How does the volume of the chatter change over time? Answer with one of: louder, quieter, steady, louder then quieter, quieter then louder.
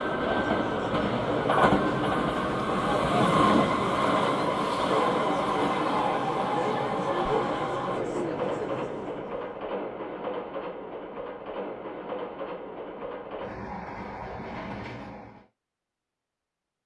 steady.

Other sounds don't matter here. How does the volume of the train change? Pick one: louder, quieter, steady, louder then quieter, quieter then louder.
quieter.